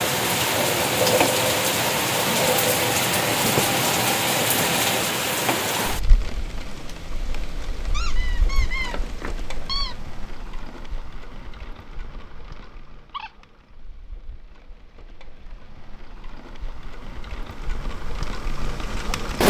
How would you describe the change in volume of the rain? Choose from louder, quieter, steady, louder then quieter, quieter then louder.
quieter then louder.